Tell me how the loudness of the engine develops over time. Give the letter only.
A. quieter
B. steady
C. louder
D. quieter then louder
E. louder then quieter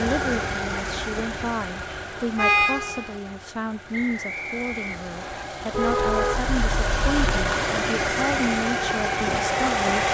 D.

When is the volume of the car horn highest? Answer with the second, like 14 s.
3 s.